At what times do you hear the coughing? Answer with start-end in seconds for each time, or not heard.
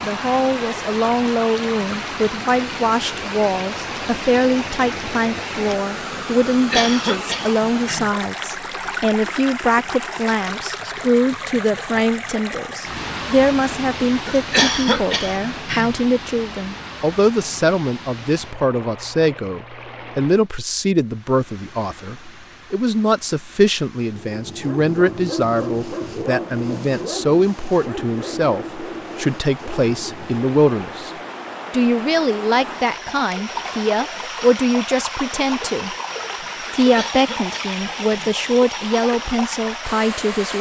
6.5-8.1, 14.2-15.9, 36.6-38.4.